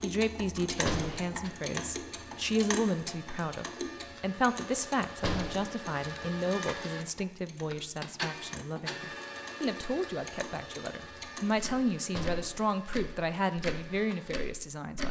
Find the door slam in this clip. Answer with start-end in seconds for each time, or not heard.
0.8-1.4, 5.1-5.8, 12.2-12.7.